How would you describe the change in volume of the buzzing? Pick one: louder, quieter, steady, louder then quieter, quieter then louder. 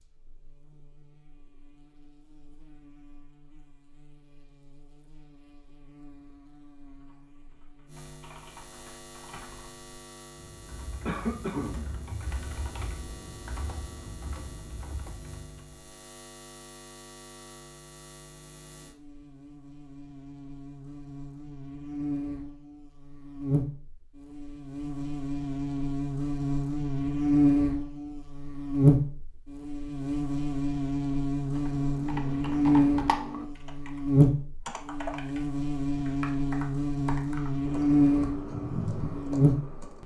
louder.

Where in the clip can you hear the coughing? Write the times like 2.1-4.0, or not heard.
11.1-11.8.